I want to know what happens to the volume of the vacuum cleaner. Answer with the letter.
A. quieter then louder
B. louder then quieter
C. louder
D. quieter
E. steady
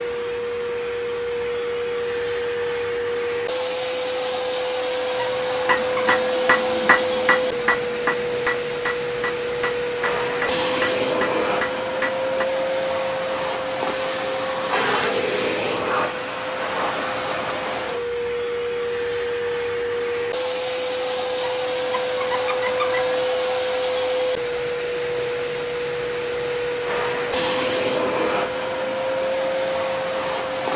E.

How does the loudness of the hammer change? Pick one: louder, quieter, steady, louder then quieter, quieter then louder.
quieter.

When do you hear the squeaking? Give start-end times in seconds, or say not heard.
5.2-6.2, 21.4-23.2.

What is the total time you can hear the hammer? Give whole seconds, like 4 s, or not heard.
7 s.